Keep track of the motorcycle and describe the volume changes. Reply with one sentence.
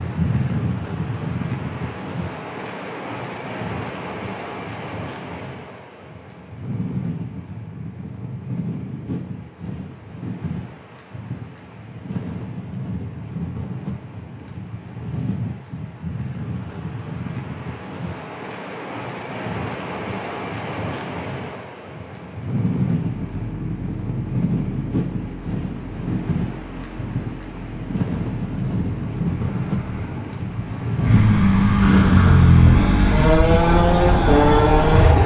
The loudness of the motorcycle goes up.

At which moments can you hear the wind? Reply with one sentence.
You can hear the wind from 0.0 to 35.2 s.